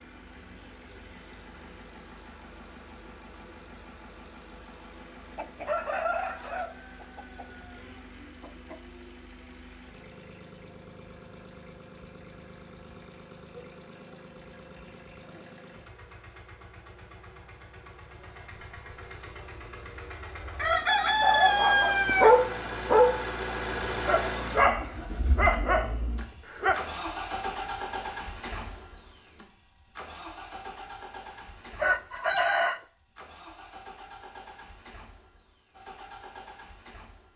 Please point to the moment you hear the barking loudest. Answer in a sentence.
The loudest moment of the barking is at 22 seconds.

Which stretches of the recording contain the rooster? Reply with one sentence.
The rooster can be heard from 5.3 to 8.8 s, from 20.6 to 22.4 s and from 31.8 to 32.8 s.